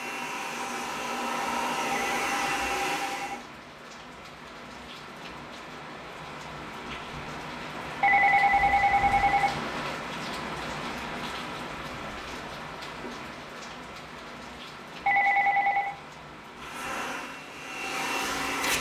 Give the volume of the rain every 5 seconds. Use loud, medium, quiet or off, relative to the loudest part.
medium, loud, loud, medium.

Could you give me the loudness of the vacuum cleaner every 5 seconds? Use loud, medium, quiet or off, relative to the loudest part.
loud, off, off, loud.